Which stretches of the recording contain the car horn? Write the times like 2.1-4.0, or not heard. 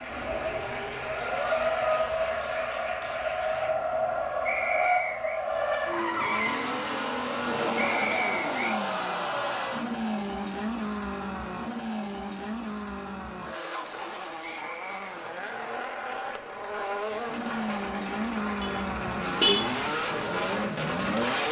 18.6-19.8.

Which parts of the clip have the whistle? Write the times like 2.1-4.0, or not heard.
4.5-5.4, 7.8-8.8, 14.4-14.9.